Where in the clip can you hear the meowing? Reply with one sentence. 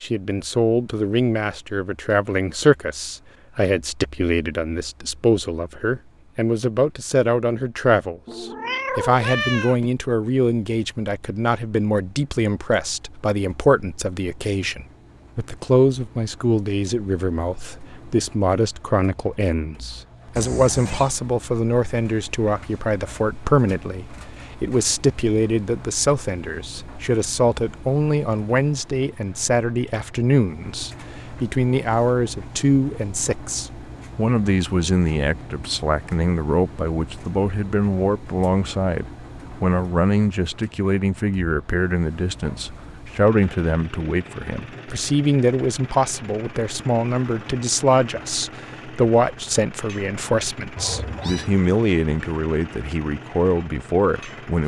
The meowing can be heard from 8.2 to 9.9 s, from 20.4 to 21.1 s and from 50.8 to 51.5 s.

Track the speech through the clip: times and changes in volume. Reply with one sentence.
You can hear the speech from 0.0 to 54.6 s, at a steady volume.